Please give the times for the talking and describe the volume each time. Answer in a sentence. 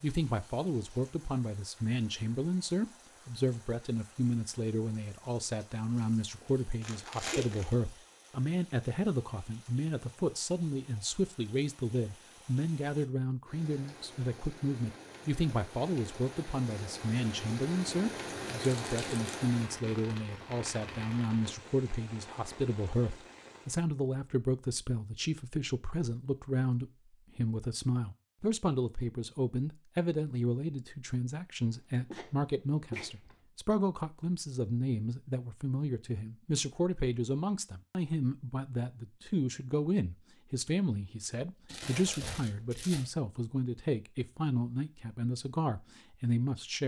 You can hear the talking from 0.0 to 46.8 s, at a steady volume.